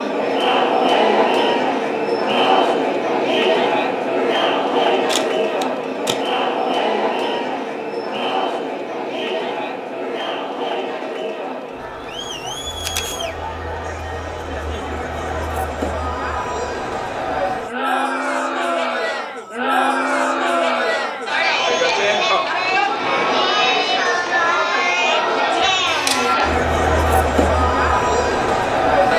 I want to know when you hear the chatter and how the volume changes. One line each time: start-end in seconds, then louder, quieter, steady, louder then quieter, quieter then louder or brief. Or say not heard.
0.0-29.1 quieter then louder.